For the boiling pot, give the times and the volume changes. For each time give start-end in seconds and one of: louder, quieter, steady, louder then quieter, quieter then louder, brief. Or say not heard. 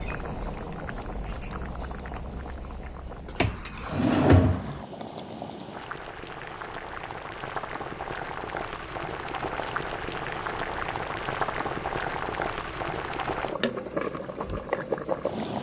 0.0-15.5 louder.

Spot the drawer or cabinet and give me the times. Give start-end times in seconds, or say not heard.
3.4-4.8.